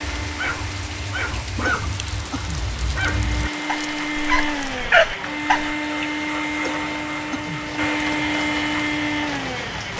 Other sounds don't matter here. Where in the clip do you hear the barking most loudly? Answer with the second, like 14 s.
5 s.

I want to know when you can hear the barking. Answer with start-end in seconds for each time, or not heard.
0.2-5.8.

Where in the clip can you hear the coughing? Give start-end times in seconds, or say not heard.
1.6-2.6, 6.6-7.7.